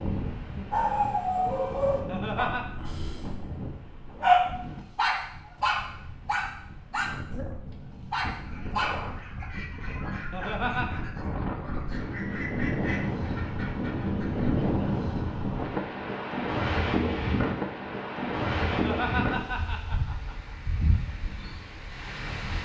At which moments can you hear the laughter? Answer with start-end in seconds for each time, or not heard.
2.0-2.6, 10.3-11.0, 18.7-20.6.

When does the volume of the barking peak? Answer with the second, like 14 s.
4 s.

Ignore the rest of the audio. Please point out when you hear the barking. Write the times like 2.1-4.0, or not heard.
0.7-9.4.